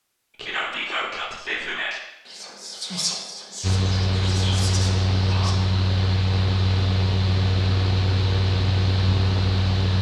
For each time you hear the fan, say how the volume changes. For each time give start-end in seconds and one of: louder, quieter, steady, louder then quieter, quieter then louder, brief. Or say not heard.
3.6-9.9 steady.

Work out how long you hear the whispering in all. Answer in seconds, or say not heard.
5 s.